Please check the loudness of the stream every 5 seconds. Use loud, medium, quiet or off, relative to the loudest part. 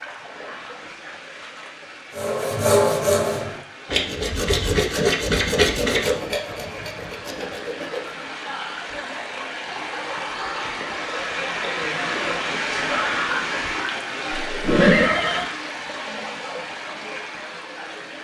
quiet, medium, loud, medium.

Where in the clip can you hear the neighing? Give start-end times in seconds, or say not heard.
14.4-15.4.